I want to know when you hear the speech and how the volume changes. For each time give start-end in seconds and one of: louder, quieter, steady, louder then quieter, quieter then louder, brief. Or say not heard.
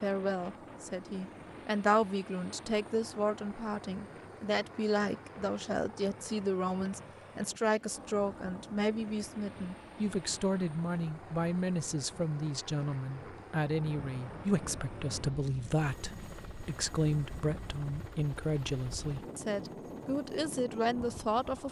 0.0-21.6 steady.